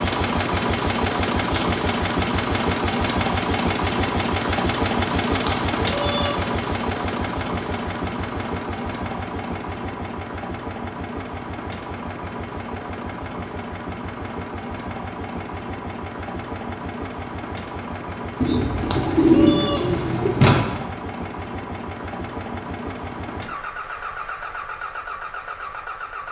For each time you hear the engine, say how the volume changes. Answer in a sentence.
The engine can be heard from 0.0 to 26.2 s, getting quieter.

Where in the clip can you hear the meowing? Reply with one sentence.
You can hear the meowing from 5.5 to 6.4 s and from 18.9 to 20.1 s.